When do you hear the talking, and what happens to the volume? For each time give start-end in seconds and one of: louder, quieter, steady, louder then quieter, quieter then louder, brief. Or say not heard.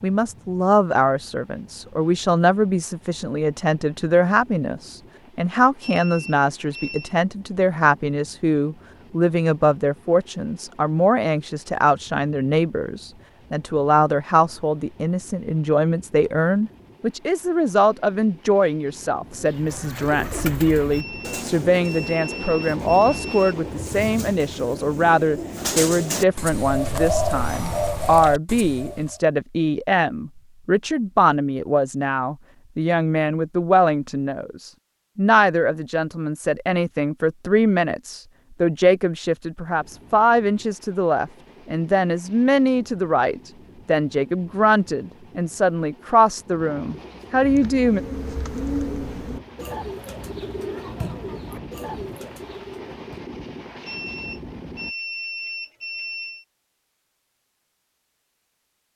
0.0-48.0 steady.